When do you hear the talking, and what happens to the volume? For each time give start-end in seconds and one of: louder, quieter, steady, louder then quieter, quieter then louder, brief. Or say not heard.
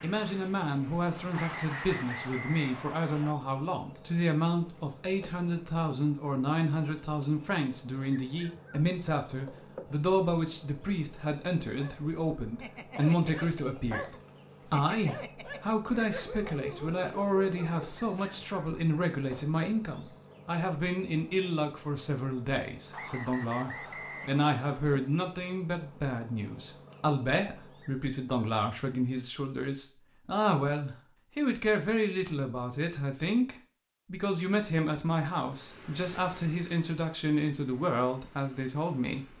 0.0-39.3 steady.